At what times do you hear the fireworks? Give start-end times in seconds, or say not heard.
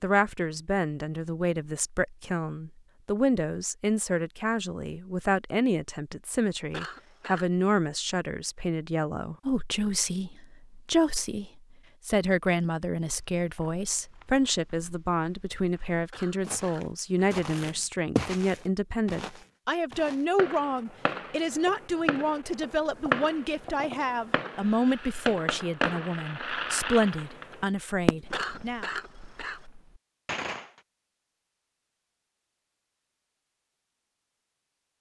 20.4-30.6.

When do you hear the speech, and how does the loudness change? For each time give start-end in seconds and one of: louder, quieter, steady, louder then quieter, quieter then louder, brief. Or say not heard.
0.0-28.9 steady.